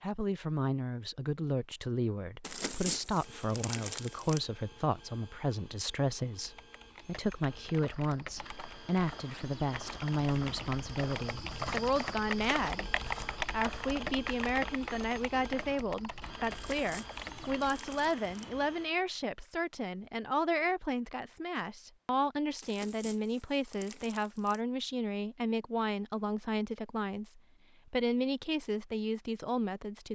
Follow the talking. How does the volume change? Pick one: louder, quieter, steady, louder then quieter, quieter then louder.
steady.